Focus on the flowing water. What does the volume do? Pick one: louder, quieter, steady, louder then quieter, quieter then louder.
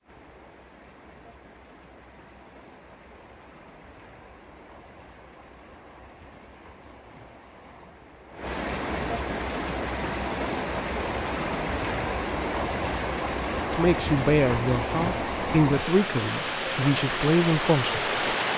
louder.